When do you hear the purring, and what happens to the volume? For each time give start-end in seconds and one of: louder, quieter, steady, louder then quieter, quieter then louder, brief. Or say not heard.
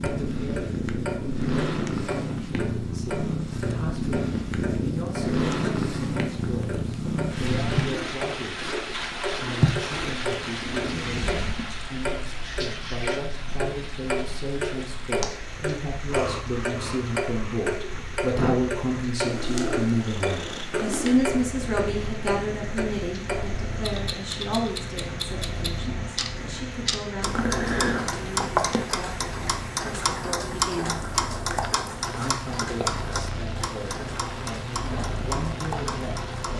0.0-36.5 quieter.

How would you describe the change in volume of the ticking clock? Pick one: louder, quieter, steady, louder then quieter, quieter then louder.
louder.